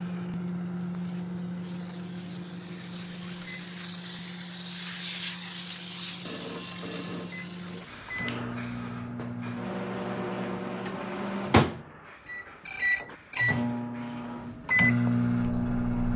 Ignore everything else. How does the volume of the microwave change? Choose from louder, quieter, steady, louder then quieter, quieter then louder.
quieter then louder.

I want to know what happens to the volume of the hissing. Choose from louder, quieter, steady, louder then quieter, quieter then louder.
louder then quieter.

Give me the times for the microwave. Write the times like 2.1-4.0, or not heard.
0.0-16.1.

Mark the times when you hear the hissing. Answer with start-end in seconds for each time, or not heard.
0.0-16.1.